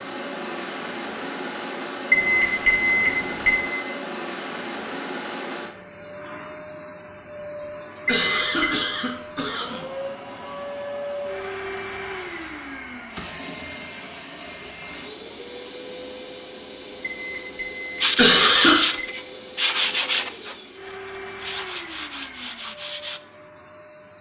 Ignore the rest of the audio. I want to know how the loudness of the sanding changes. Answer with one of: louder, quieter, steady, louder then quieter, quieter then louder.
quieter.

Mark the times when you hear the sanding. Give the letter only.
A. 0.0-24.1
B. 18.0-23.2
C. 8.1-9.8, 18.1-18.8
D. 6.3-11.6
B.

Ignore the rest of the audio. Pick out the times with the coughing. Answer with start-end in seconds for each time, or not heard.
8.1-9.8, 18.1-18.8.